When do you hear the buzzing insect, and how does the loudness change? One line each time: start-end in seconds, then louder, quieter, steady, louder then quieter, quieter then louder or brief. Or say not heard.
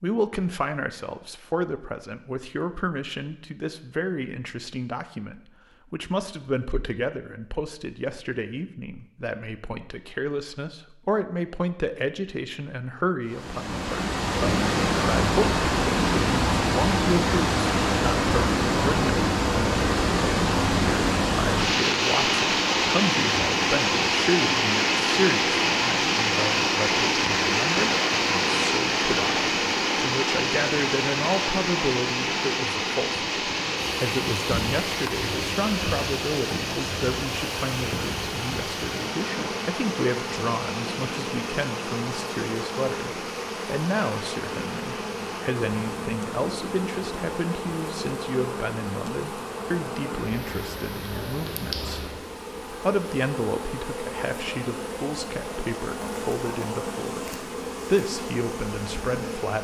33.8-59.5 steady.